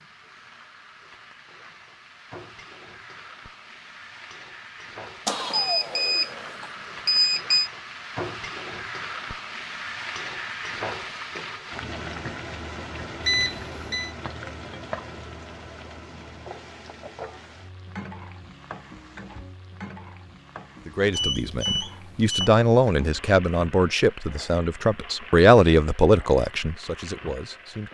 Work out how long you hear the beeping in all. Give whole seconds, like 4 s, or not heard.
5 s.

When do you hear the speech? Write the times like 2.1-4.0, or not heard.
20.9-27.8.